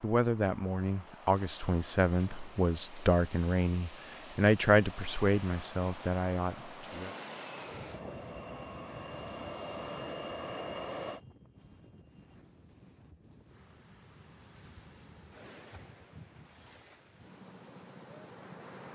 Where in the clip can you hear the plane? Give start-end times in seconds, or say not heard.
6.8-11.2.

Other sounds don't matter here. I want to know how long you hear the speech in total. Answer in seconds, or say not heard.
7 s.